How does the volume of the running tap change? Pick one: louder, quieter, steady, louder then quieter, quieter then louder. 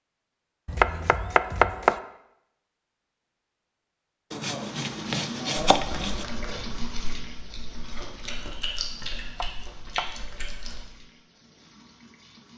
quieter.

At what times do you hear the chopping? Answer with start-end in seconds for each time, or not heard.
0.7-1.9, 4.3-6.2, 9.3-10.2.